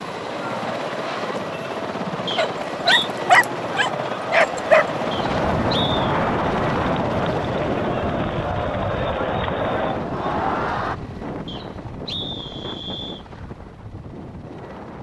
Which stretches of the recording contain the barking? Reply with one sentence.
You can hear the barking from 2.4 to 4.8 s.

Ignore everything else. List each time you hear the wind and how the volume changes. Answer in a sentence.
The wind can be heard from 5.0 to 14.9 s, getting quieter.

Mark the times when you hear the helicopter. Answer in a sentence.
You can hear the helicopter from 0.0 to 14.9 s.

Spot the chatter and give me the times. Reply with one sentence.
The chatter can be heard from 0.1 to 10.9 s.